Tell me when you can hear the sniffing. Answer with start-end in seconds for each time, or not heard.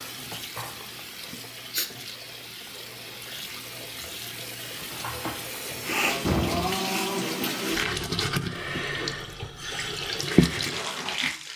1.3-1.9, 5.8-7.0.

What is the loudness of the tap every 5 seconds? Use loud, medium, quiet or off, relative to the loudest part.
quiet, loud, loud.